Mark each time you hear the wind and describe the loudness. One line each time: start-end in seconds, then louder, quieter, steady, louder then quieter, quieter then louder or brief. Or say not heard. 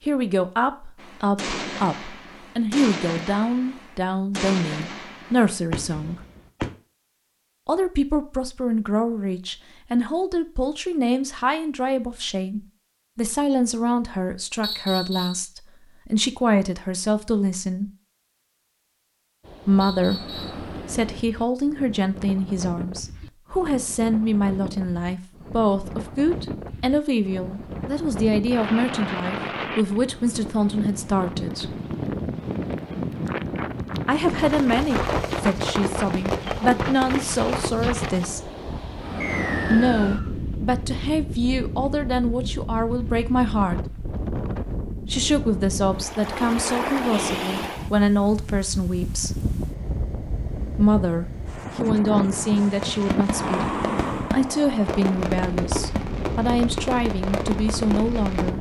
19.4-58.5 louder.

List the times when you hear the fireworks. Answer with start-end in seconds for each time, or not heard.
0.9-6.7, 34.4-37.7, 52.8-58.5.